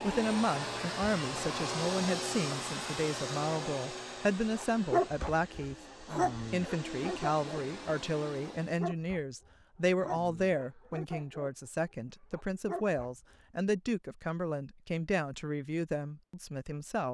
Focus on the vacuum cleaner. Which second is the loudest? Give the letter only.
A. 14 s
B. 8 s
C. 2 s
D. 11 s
C.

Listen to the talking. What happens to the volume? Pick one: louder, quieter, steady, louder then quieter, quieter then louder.
steady.